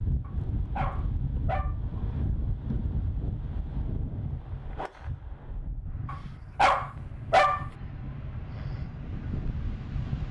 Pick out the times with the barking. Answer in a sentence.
The barking can be heard from 0.2 to 1.8 s and from 6.0 to 7.7 s.